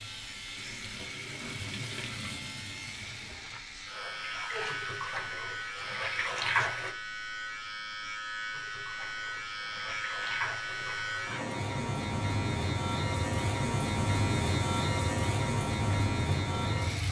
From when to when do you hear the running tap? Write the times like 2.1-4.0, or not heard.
0.0-7.0, 8.5-17.0.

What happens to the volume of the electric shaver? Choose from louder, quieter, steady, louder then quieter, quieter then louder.
louder.